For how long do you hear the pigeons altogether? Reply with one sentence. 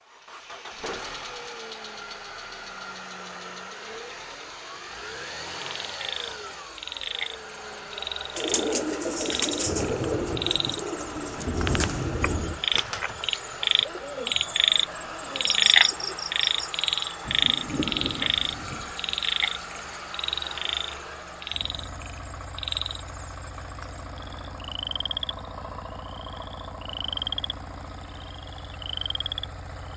You can hear the pigeons for 8 seconds altogether.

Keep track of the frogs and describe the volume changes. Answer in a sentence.
The volume of the frogs goes up, then down.